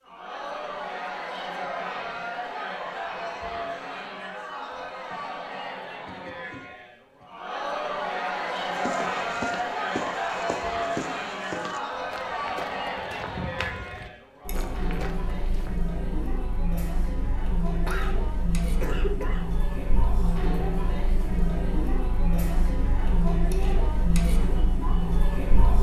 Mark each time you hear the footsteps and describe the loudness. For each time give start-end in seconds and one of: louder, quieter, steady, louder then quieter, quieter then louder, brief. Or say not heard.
8.4-15.9 quieter.